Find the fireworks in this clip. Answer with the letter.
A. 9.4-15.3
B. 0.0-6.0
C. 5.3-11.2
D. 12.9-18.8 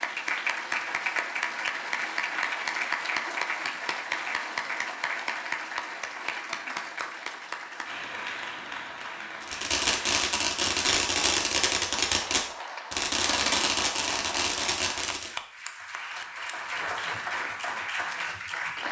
A.